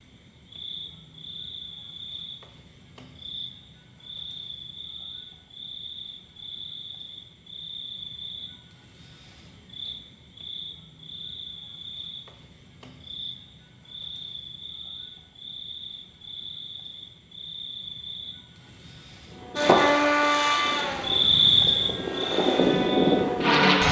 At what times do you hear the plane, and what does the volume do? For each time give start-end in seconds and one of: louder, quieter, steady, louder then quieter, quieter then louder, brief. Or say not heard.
19.4-23.8 quieter then louder.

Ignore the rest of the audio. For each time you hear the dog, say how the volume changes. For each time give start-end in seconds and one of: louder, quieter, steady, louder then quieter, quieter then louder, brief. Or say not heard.
not heard.